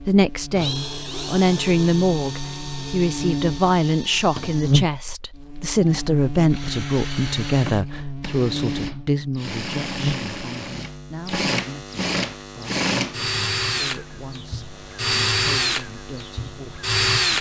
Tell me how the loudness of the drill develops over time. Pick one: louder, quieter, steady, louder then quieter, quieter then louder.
louder.